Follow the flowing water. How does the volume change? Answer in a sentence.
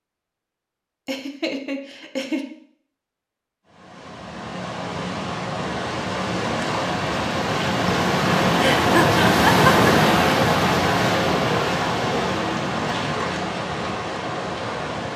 The volume of the flowing water goes up, then down.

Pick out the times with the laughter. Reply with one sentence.
The laughter can be heard from 1.1 to 2.5 s and from 8.6 to 9.9 s.